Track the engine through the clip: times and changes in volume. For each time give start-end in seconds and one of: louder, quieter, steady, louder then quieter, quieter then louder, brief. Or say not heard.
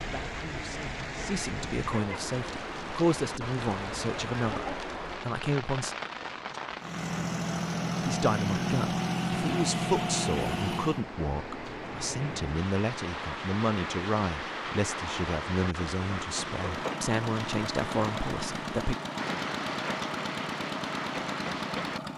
6.8-11.1 steady
16.6-22.1 steady.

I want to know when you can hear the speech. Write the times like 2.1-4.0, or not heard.
0.0-6.0, 8.1-18.9.